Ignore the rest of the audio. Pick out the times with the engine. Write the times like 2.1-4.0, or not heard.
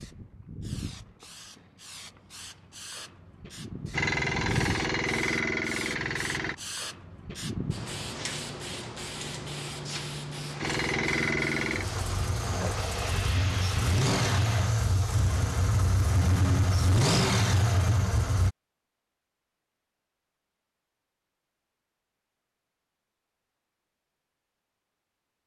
3.9-6.5, 10.6-18.6.